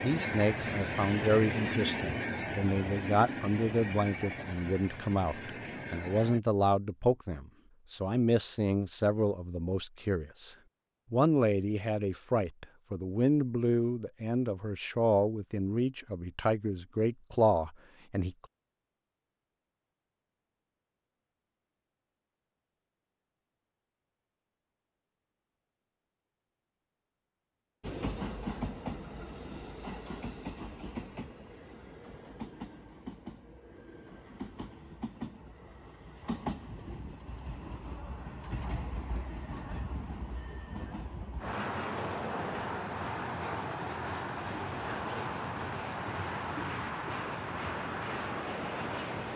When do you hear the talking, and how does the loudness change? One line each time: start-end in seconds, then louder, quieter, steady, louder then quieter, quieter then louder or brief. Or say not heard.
0.0-18.4 steady.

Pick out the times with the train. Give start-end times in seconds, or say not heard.
0.0-6.4, 27.8-49.3.